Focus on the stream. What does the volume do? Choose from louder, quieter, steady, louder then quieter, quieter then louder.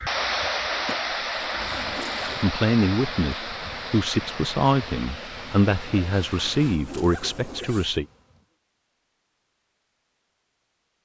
quieter.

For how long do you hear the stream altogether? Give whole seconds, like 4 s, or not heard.
7 s.